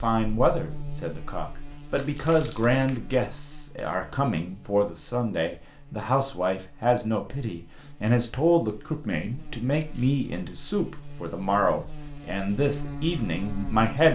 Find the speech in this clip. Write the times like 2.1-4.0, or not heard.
0.0-14.0.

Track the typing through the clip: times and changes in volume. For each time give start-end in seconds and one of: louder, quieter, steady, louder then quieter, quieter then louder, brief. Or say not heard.
not heard.